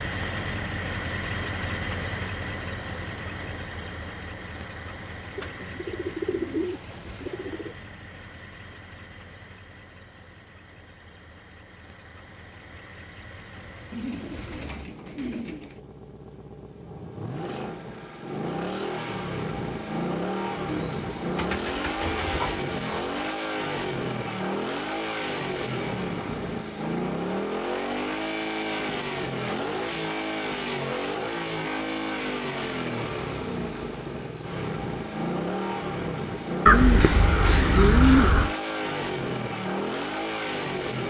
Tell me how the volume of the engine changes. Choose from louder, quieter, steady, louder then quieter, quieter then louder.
quieter then louder.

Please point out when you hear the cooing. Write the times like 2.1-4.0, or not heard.
5.3-7.8, 13.9-15.8, 20.7-23.1, 36.6-38.5.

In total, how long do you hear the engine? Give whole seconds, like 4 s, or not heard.
41 s.